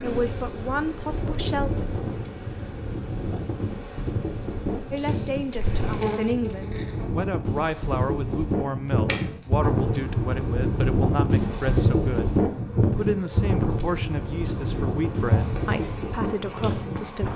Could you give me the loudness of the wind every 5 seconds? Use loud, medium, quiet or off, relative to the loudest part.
medium, loud, loud, medium.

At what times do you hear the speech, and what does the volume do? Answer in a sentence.
You can hear the speech briefly from 0.0 to 1.9 s; and from 4.9 to 17.3 s, at a steady volume.